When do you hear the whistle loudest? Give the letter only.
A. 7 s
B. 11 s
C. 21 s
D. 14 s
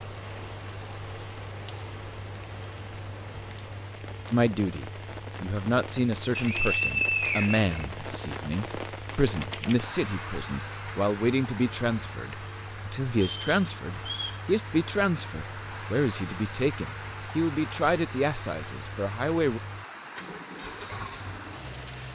A.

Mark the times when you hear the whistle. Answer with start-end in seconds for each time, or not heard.
6.3-7.8, 13.2-14.4.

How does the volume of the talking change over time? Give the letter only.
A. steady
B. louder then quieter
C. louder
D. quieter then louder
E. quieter
A.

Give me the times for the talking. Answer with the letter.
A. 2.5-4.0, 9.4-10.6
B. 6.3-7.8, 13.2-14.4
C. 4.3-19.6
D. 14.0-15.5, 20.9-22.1
C.